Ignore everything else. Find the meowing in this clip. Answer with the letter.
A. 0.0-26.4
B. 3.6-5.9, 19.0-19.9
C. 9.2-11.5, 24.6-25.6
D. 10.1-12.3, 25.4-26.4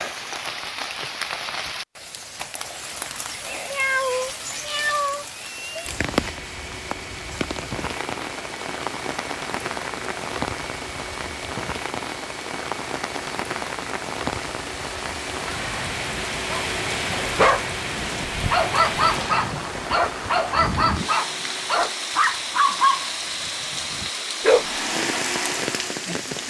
B.